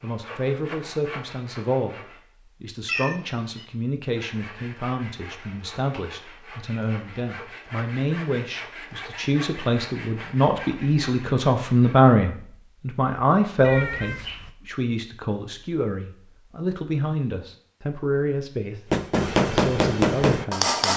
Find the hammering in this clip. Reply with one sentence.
You can hear the hammering from 18.9 to 20.9 s.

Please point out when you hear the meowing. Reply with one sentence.
You can hear the meowing from 2.9 to 3.6 s and from 13.6 to 14.5 s.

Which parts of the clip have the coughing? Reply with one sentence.
You can't hear the coughing here.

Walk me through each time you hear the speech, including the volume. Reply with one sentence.
You can hear the speech briefly from 0.0 to 2.0 s; and from 2.6 to 20.9 s, getting louder then quieter.